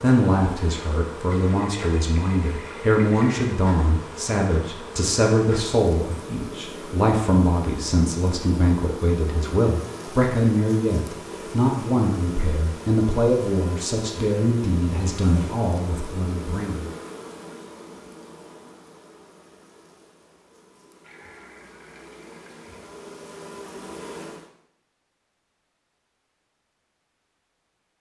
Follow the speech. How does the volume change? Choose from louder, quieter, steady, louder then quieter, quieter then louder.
steady.